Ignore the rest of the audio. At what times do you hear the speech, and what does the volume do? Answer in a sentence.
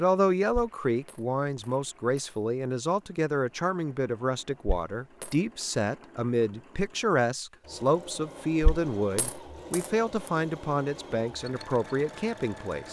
You can hear the speech from 0.0 to 12.8 s, at a steady volume.